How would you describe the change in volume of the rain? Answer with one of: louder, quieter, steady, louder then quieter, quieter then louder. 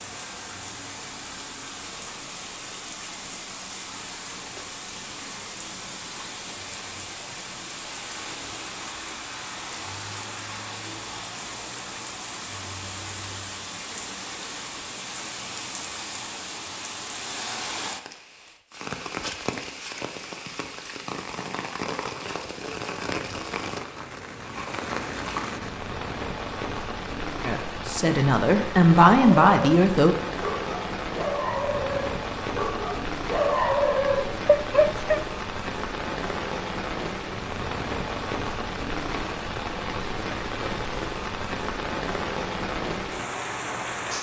louder.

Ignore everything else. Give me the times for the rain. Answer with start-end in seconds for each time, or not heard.
0.0-44.1.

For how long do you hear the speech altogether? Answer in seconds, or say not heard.
3 s.